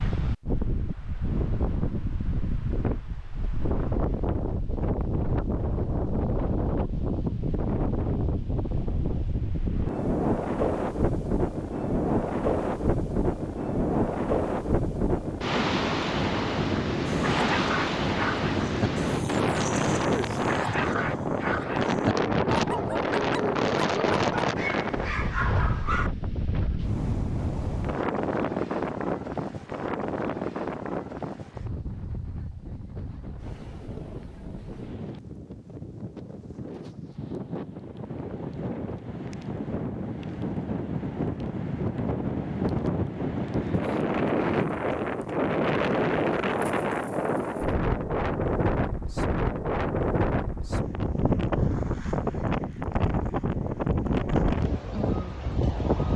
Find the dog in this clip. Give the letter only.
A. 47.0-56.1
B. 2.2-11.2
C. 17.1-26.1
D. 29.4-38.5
C.